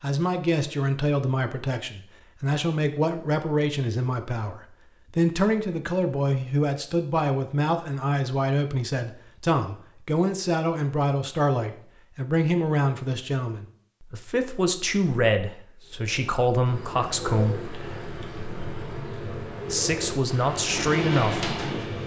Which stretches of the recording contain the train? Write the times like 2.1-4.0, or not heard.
20.4-22.0.